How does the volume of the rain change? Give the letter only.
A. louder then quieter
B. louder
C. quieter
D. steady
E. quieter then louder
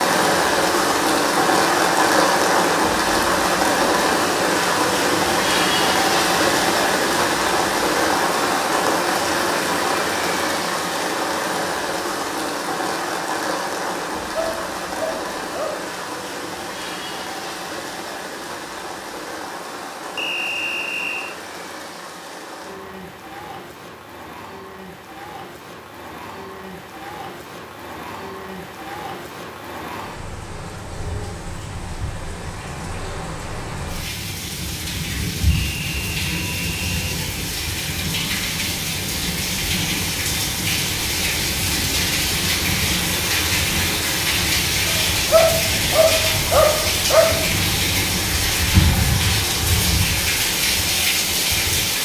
E.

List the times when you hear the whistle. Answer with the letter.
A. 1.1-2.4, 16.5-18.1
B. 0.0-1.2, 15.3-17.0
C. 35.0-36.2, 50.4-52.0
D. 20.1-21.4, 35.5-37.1
D.